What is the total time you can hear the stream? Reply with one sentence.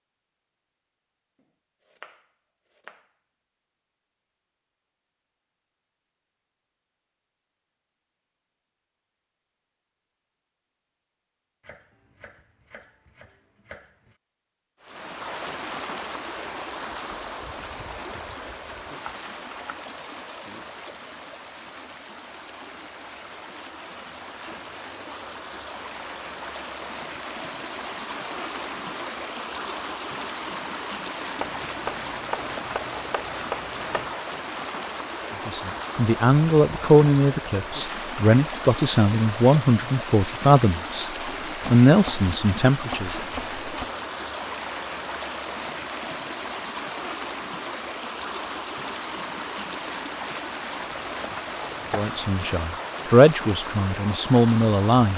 The stream can be heard for 40 seconds in total.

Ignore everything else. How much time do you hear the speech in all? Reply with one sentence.
The speech can be heard for 11 seconds in total.